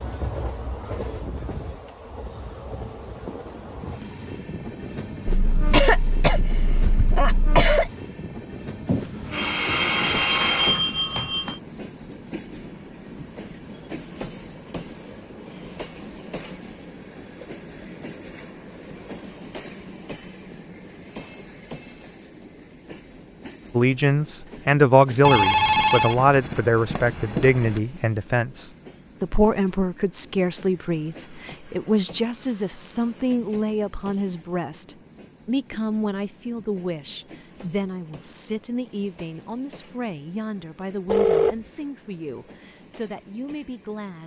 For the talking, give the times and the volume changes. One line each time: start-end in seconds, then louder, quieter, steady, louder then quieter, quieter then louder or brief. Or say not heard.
23.8-44.2 quieter.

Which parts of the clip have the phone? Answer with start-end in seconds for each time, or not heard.
8.8-11.6, 25.2-27.8, 41.0-41.5.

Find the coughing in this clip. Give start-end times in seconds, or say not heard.
5.2-7.9.